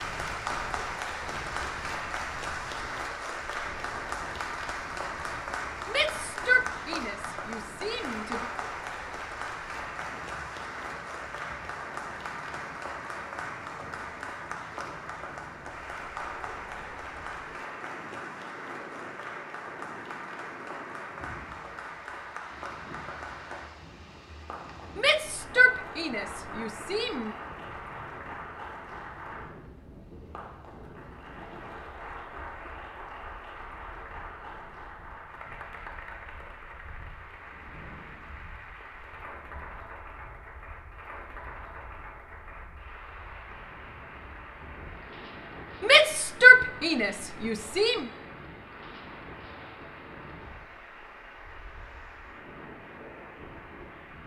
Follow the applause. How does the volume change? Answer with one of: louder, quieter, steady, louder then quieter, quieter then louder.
quieter.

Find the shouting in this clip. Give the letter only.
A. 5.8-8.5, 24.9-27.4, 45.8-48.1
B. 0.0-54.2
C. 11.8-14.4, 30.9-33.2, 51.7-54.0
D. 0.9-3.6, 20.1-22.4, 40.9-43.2
A.